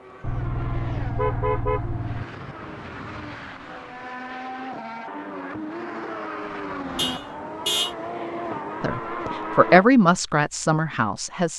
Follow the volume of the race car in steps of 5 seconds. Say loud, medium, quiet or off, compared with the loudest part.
medium, loud, off.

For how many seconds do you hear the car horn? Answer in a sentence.
The car horn can be heard for 3 seconds in total.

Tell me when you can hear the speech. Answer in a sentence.
The speech can be heard from 8.8 to 11.5 s.